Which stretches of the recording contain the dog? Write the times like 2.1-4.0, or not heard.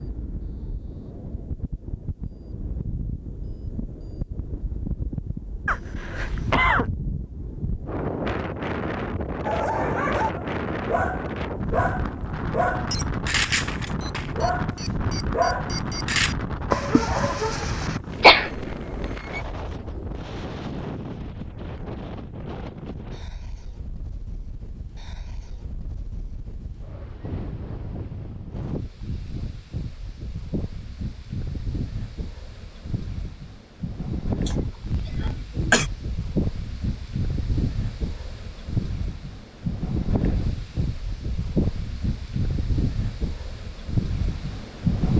9.4-18.0.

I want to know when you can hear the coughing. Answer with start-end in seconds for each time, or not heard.
5.7-6.8, 18.2-18.6, 34.5-35.9.